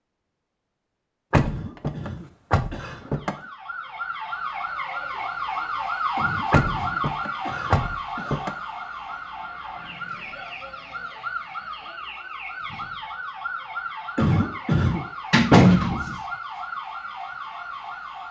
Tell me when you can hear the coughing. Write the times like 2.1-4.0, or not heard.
1.4-3.5, 6.2-8.4, 14.2-15.1.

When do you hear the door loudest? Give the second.
16 s.